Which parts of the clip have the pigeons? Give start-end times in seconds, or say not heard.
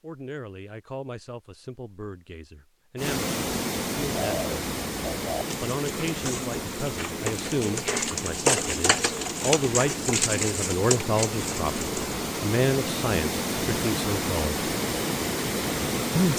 4.2-12.2.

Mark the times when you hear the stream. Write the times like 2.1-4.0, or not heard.
3.0-16.3.